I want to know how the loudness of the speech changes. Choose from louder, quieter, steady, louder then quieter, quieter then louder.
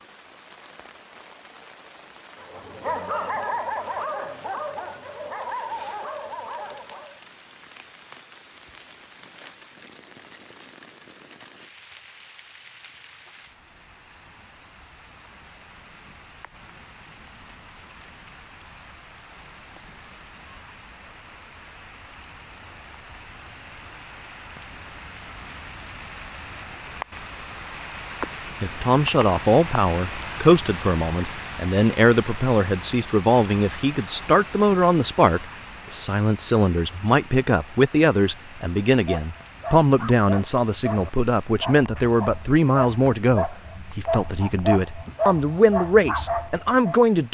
steady.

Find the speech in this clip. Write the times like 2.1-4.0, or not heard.
28.6-47.2.